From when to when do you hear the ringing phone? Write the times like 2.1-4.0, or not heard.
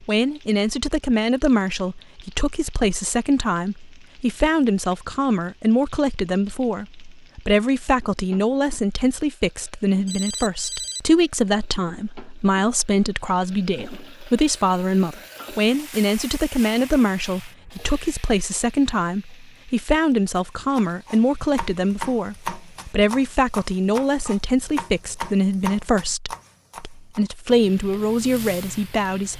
10.1-11.0.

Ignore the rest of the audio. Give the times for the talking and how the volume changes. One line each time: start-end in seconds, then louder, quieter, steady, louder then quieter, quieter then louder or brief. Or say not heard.
0.0-29.3 steady.